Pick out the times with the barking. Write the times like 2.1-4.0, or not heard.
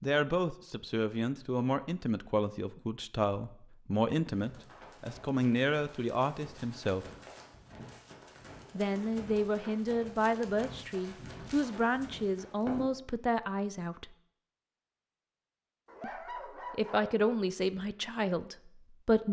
15.8-17.1.